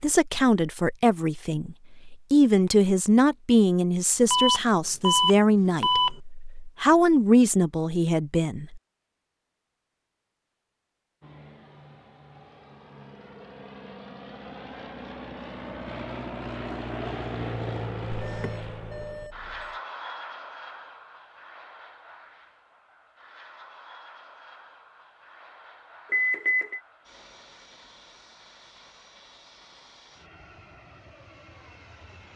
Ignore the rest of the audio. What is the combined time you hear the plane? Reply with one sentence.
The plane can be heard for 21 seconds in total.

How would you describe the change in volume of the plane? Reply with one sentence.
The volume of the plane goes up, then down.